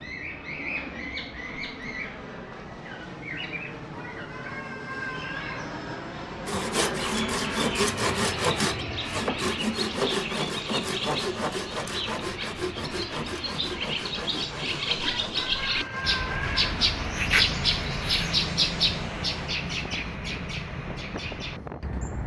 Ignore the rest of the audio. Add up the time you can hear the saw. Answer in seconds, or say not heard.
10 s.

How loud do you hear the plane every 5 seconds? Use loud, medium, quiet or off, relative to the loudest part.
medium, loud, medium, medium, medium.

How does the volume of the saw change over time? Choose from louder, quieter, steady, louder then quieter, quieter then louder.
quieter.